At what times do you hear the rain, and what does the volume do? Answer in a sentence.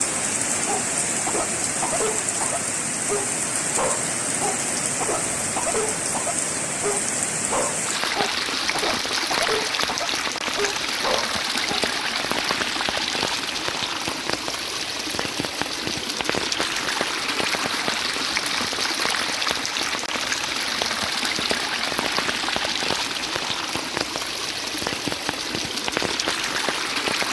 The rain can be heard from 0.0 to 27.2 s, at a steady volume.